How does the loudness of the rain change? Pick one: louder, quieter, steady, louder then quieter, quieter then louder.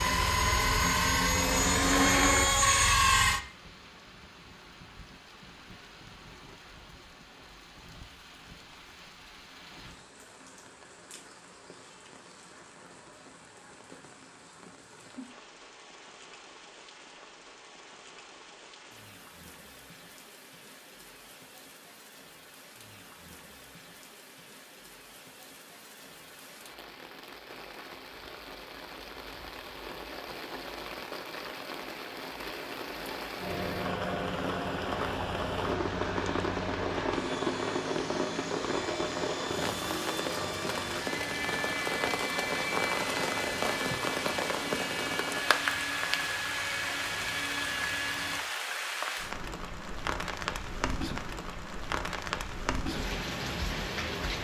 louder.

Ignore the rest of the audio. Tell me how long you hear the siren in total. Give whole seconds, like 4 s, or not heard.
not heard.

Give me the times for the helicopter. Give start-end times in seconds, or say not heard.
0.0-3.4, 33.4-48.4.